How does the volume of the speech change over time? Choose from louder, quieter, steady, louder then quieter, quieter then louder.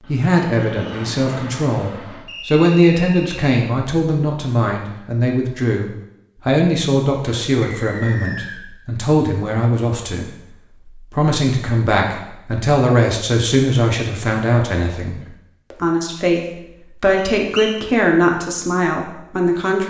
steady.